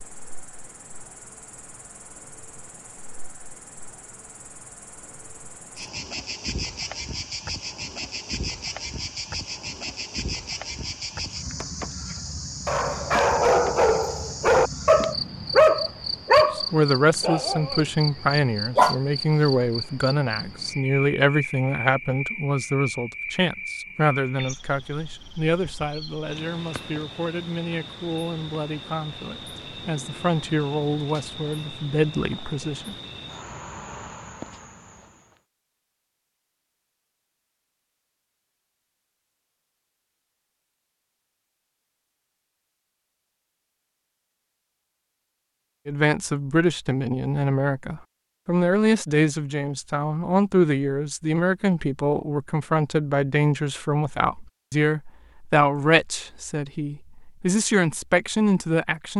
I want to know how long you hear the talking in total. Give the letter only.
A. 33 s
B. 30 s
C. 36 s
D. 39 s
B.